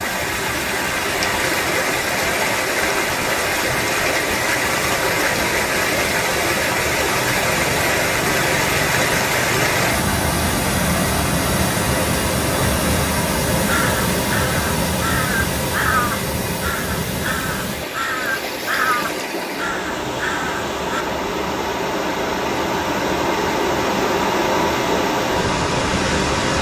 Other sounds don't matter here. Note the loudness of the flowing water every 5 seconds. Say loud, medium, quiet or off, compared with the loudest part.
loud, loud, loud, medium, loud, loud.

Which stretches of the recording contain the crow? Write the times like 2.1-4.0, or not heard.
13.7-21.1.